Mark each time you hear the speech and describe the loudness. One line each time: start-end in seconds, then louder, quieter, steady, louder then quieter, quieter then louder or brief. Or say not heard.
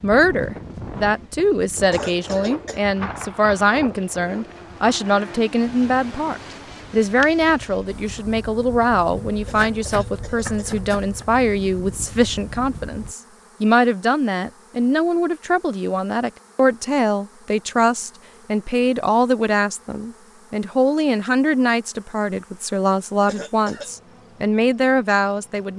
0.0-25.7 steady.